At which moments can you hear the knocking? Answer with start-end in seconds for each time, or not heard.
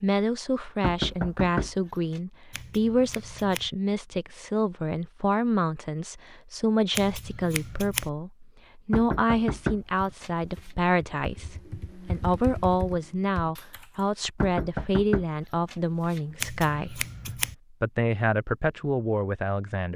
0.8-2.2, 8.9-10.3, 14.4-16.2.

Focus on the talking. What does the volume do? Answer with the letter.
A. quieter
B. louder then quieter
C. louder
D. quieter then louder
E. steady
E.